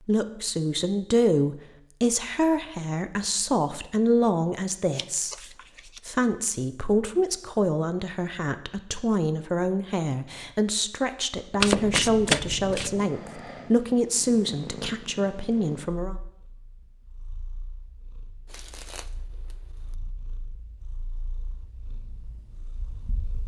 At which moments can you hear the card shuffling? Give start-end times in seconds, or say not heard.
4.9-6.0, 11.6-13.0, 18.4-19.9.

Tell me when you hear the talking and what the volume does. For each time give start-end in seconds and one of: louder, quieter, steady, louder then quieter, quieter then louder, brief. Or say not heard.
0.1-16.1 steady.